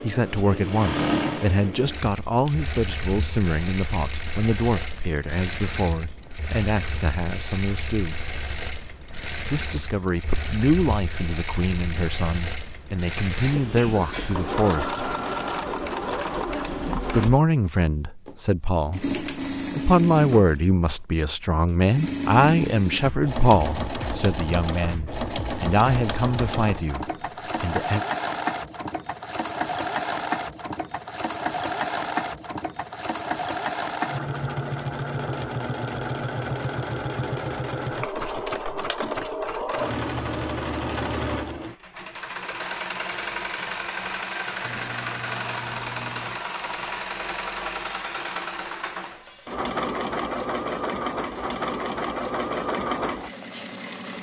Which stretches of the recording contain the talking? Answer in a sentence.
The talking can be heard from 0.0 to 8.2 s, from 9.4 to 15.1 s and from 17.1 to 28.1 s.